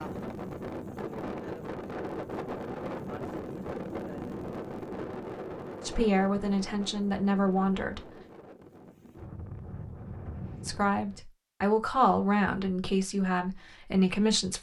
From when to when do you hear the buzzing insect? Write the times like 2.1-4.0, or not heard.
not heard.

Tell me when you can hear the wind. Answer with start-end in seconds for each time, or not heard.
0.0-11.2.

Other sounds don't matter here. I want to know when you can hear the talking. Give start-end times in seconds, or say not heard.
5.8-8.0, 10.7-14.5.